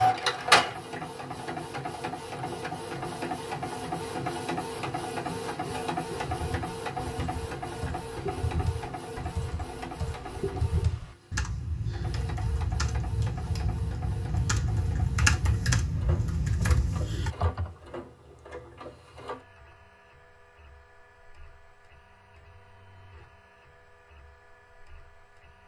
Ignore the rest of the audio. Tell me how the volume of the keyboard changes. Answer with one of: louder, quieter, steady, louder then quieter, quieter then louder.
louder.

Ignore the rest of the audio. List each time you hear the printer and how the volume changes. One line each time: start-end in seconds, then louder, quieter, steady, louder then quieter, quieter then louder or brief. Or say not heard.
0.0-25.6 quieter.